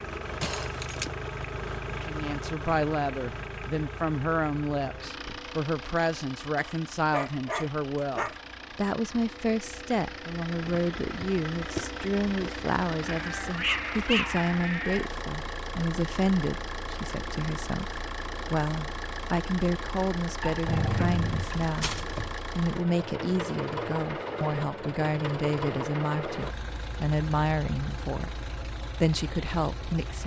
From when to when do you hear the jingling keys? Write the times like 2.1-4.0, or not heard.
0.4-1.1.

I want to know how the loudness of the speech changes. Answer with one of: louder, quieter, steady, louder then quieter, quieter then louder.
steady.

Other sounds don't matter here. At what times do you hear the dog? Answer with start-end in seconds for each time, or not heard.
6.5-8.3, 13.1-15.1, 20.4-22.4.